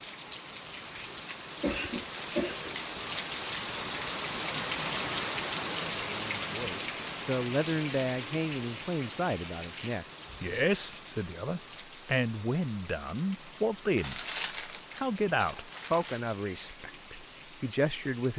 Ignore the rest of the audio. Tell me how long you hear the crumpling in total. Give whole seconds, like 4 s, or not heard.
2 s.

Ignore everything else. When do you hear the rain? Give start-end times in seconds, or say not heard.
0.0-18.3.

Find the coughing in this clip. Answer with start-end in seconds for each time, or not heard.
1.6-3.0.